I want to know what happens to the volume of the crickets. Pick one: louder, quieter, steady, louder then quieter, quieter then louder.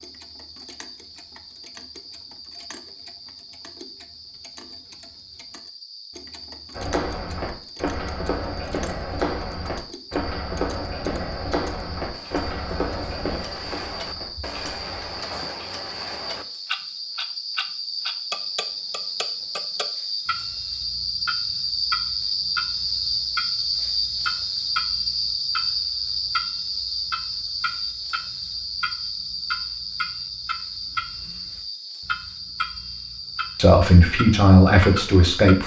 louder then quieter.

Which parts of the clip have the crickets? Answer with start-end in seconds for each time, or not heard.
0.0-35.6.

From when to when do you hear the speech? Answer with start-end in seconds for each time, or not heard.
33.5-35.6.